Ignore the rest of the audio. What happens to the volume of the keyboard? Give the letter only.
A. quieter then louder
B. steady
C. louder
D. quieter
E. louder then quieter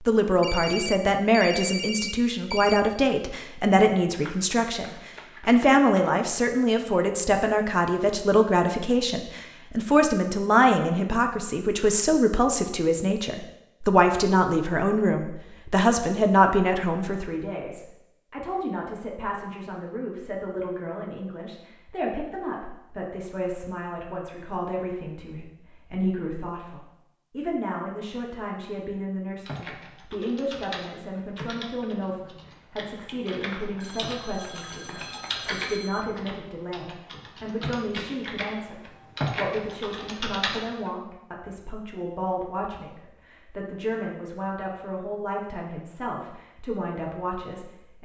C.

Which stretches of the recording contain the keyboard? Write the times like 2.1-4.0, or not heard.
29.4-40.9.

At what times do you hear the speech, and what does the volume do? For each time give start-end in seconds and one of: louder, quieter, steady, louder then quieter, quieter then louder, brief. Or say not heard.
0.1-38.8 quieter
39.4-47.9 steady.